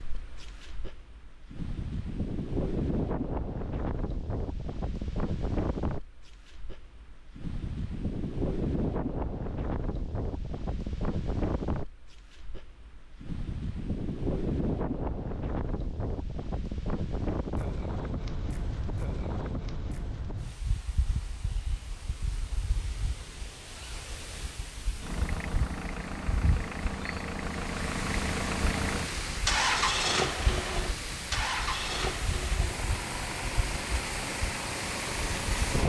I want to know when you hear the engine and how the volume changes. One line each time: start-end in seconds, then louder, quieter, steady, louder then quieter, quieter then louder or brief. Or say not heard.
25.0-35.8 louder then quieter.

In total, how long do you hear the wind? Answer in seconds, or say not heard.
36 s.